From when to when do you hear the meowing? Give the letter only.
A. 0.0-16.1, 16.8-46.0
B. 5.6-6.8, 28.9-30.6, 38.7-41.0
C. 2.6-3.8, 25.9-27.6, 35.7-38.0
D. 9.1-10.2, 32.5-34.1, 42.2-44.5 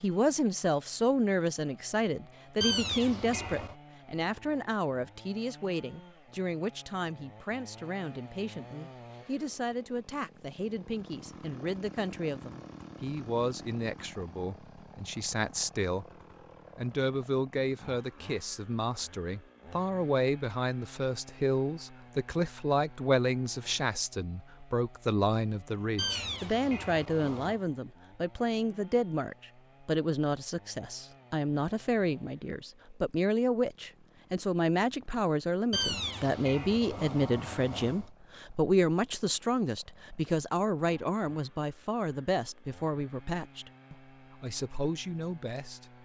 C.